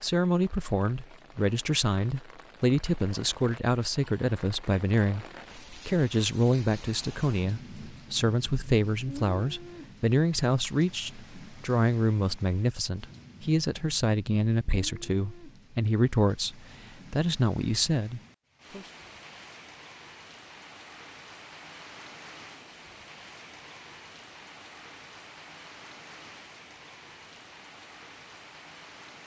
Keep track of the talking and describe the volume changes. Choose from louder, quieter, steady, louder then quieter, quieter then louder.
steady.